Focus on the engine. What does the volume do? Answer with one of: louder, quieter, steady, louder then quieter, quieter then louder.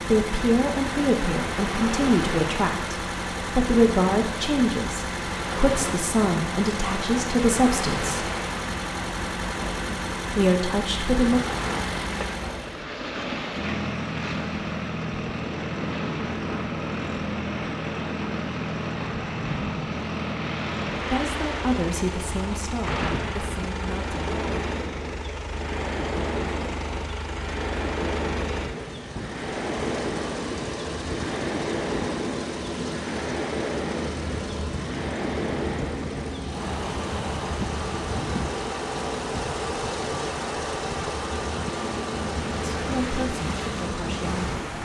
steady.